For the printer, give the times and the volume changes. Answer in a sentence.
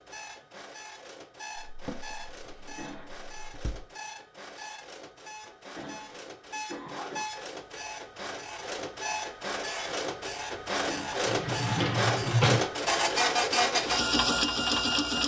You can hear the printer from 0.0 to 15.2 s, getting louder.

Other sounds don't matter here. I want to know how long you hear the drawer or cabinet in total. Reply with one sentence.
You can hear the drawer or cabinet for 4 seconds altogether.